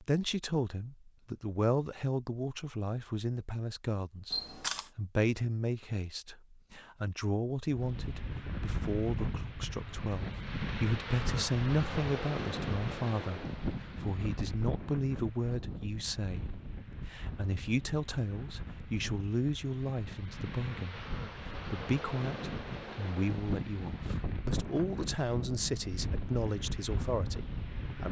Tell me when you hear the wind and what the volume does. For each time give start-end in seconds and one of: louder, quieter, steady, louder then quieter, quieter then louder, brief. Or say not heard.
7.7-28.0 quieter then louder.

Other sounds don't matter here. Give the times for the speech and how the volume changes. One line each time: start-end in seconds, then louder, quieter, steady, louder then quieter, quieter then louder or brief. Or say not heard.
0.0-28.0 steady.